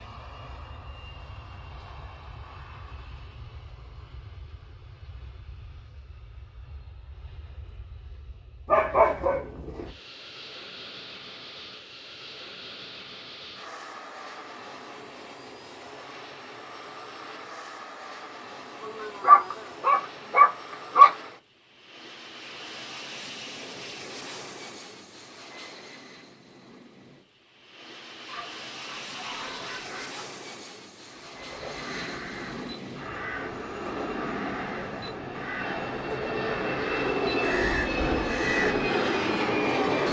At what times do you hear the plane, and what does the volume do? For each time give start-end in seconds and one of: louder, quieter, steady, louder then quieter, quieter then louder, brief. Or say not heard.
0.0-40.0 louder.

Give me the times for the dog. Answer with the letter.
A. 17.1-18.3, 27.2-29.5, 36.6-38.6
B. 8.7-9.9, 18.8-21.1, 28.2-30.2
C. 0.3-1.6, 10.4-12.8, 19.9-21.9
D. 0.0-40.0
B.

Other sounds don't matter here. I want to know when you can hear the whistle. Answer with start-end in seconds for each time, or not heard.
not heard.